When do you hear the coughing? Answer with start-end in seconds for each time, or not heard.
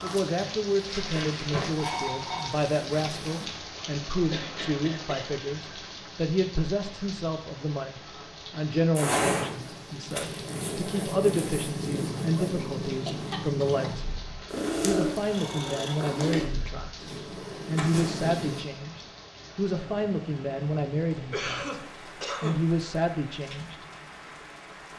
4.3-5.3, 12.4-13.8, 21.3-22.6.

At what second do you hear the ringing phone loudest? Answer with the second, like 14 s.
2 s.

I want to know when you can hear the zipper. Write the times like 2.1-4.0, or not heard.
not heard.